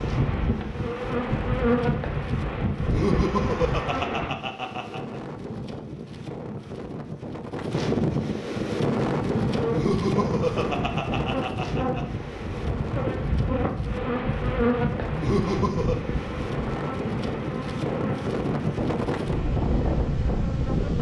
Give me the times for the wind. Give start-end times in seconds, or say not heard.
0.0-20.9.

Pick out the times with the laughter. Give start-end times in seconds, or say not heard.
2.9-5.2, 9.7-12.1, 15.2-15.9.